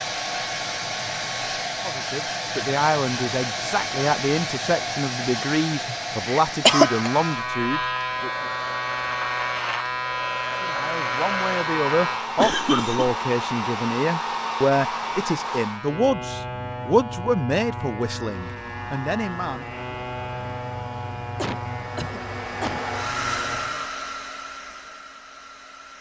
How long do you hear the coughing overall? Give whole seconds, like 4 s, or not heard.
4 s.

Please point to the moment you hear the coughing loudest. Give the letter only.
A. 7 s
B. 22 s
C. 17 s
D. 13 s
A.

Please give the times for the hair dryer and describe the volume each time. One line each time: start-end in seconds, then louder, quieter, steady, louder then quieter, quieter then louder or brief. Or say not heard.
0.0-15.8 quieter then louder
18.2-25.9 louder then quieter.